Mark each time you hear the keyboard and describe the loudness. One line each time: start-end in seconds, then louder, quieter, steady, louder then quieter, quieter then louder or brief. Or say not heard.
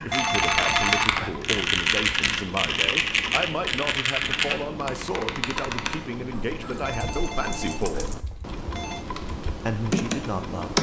0.0-10.7 quieter then louder.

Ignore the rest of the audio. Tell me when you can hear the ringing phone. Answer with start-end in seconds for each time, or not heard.
0.1-1.5, 6.8-9.1.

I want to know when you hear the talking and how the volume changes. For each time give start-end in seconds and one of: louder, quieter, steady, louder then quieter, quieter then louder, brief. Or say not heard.
0.1-8.2 steady
9.7-10.7 brief.